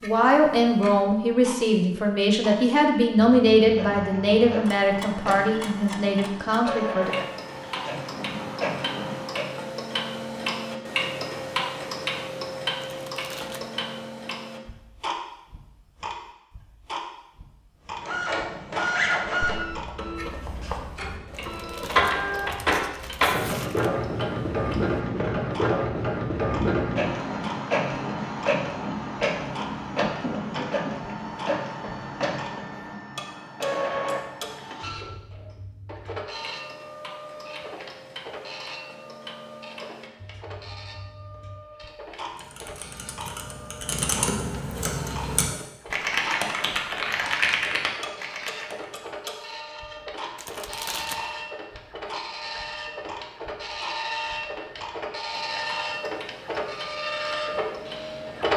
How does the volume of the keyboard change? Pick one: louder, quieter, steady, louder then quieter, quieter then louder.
louder.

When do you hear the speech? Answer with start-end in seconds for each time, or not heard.
0.0-7.2.